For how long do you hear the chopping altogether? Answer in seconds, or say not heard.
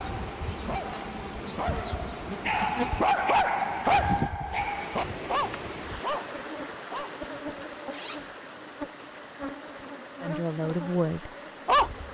not heard.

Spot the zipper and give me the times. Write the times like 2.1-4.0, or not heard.
7.9-8.3.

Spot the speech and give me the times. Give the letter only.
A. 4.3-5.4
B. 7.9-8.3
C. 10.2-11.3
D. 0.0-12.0
C.